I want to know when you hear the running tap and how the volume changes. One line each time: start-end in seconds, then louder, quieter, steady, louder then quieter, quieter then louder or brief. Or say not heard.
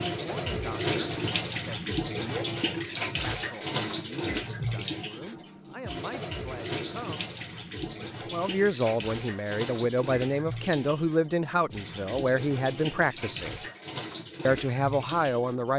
0.0-15.7 quieter.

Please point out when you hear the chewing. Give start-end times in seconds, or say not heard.
not heard.